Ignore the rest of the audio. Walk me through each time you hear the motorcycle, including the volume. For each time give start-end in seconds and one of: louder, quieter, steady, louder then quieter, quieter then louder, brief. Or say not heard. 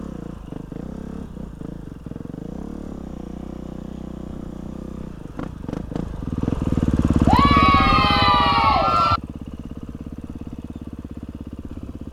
0.0-12.0 louder then quieter.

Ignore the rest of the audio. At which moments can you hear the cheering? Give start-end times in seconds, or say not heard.
7.2-9.2.